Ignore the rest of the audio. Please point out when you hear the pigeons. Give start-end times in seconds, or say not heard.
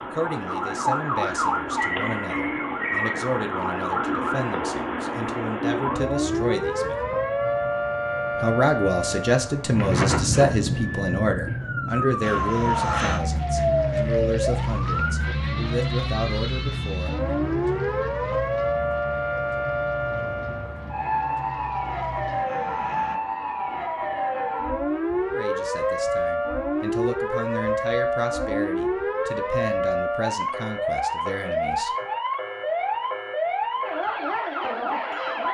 not heard.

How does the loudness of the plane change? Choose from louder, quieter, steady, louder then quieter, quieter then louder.
quieter.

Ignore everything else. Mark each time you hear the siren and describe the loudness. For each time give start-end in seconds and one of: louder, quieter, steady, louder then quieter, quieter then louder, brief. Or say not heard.
0.0-35.5 steady.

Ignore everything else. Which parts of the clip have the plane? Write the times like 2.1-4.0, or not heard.
12.2-23.2.